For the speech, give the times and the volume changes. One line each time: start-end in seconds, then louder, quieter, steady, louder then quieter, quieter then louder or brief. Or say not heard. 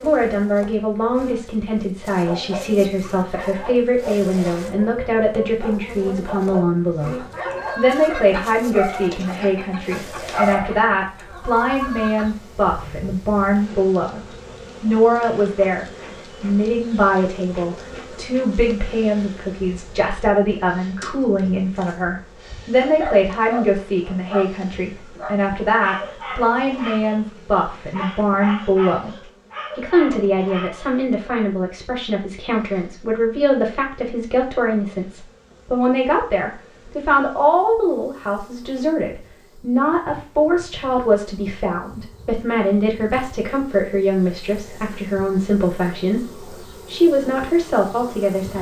0.0-14.2 steady
14.8-29.1 steady
29.8-48.5 steady.